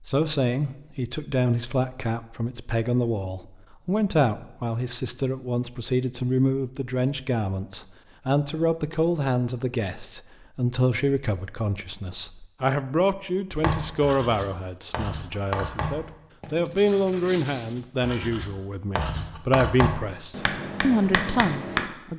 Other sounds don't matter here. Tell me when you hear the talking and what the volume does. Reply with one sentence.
The talking can be heard from 0.1 to 22.1 s, at a steady volume.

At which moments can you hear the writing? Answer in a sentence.
The writing can be heard from 13.6 to 21.9 s.